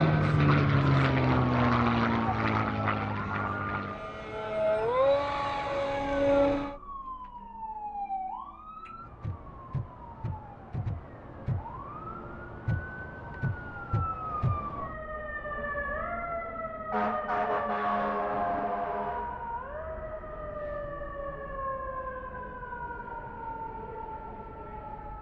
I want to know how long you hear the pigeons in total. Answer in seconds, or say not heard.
not heard.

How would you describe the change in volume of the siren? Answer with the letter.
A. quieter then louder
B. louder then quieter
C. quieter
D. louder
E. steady
B.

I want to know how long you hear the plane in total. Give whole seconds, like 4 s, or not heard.
7 s.